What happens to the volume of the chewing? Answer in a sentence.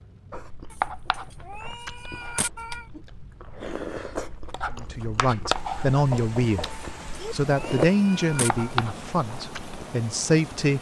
The volume of the chewing goes down, then up.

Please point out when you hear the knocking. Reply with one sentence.
You can hear the knocking from 6.1 to 7.3 s.